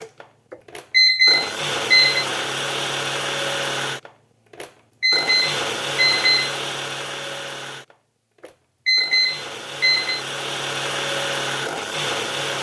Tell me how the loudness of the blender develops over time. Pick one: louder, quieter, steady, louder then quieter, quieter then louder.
quieter then louder.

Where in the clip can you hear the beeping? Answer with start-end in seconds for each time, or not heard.
0.5-2.2, 4.6-6.5, 8.4-10.2.